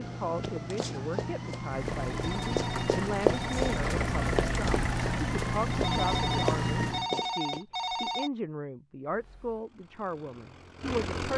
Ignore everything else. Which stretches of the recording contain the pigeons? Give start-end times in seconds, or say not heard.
not heard.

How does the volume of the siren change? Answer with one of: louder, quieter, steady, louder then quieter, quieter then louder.
louder.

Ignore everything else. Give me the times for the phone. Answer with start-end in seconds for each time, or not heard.
2.1-3.7, 5.7-8.3.